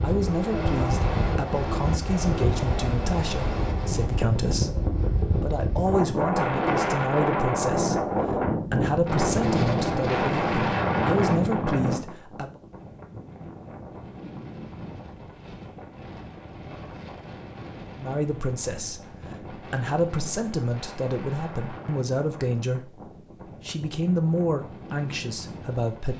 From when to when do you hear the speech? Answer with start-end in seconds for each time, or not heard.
0.0-12.6, 17.9-26.1.